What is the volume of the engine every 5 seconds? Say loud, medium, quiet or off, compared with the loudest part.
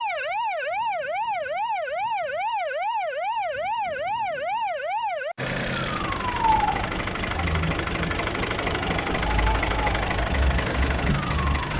off, loud, loud.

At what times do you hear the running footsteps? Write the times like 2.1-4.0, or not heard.
not heard.